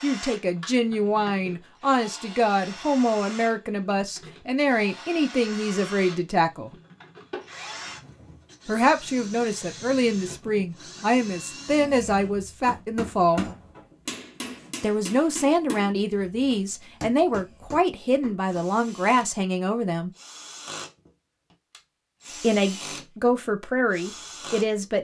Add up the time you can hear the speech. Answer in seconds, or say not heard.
19 s.